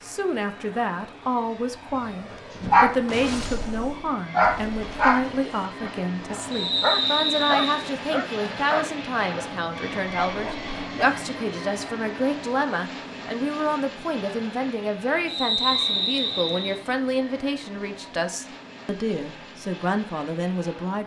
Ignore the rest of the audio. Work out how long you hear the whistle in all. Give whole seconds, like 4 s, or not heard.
3 s.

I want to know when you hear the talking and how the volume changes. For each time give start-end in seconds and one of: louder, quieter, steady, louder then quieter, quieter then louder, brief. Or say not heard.
0.0-21.0 steady.